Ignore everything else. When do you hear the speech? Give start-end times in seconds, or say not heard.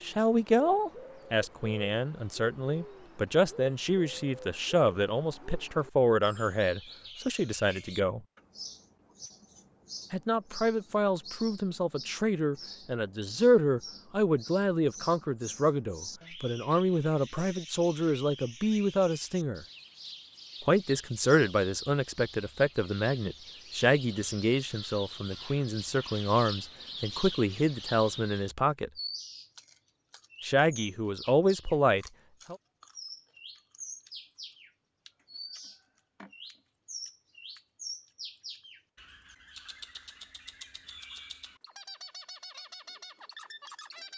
0.0-8.2, 10.1-19.6, 20.6-28.9, 30.4-32.5.